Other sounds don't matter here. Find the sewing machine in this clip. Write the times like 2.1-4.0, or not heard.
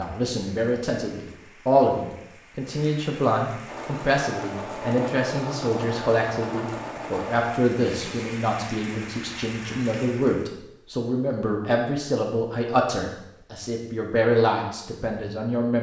3.6-8.3.